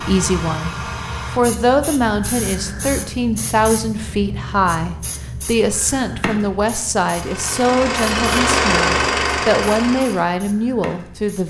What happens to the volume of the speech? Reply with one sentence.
The volume of the speech stays about the same.